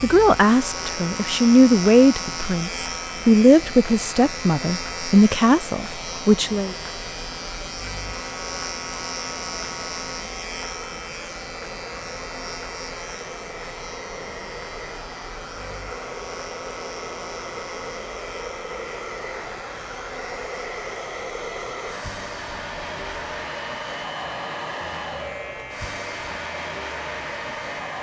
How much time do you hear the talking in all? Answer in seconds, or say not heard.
7 s.